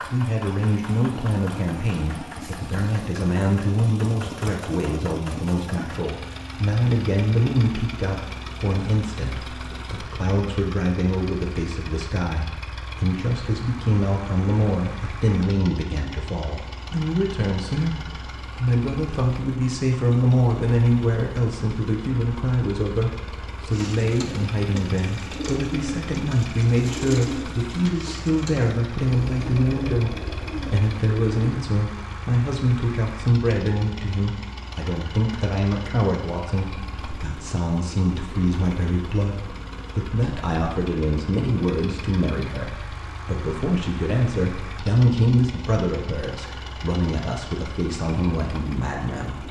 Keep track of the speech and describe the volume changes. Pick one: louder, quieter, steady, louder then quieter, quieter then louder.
steady.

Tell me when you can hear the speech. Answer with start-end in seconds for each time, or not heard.
0.0-49.4.